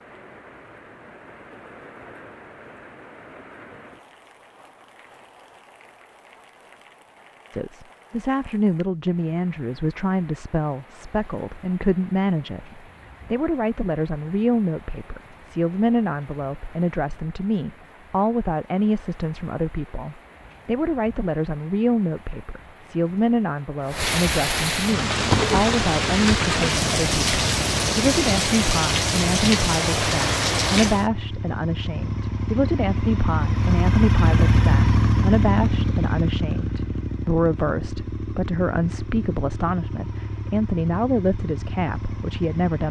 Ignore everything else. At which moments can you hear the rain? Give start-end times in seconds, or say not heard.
0.0-31.1.